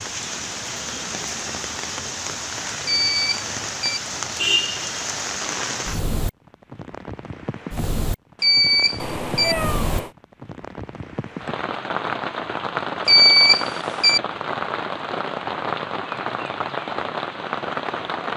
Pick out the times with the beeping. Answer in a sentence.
The beeping can be heard from 2.9 to 4.0 s, from 8.4 to 9.6 s and from 13.1 to 14.2 s.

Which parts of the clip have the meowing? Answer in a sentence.
The meowing can be heard from 8.9 to 10.1 s.